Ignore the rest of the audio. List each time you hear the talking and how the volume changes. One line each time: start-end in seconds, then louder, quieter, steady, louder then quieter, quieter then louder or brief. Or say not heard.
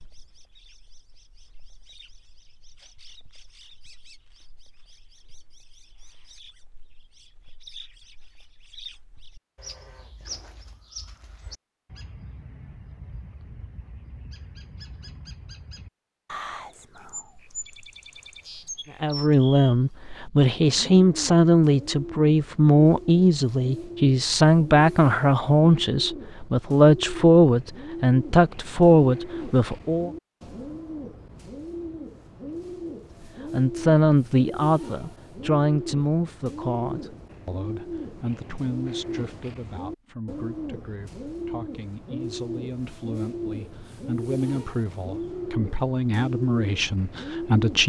19.0-30.1 steady
33.5-47.8 quieter then louder.